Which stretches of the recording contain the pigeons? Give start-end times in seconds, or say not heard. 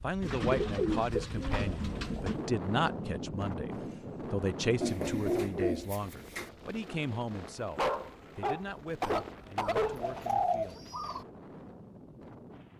0.2-2.5, 4.8-6.5, 9.8-11.2.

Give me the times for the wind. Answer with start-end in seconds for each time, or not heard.
0.0-12.7.